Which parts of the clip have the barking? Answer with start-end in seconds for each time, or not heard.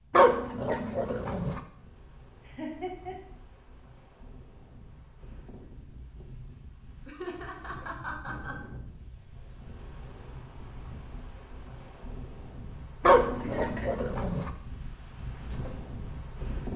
0.1-1.6, 13.0-14.5.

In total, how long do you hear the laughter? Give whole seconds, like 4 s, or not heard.
3 s.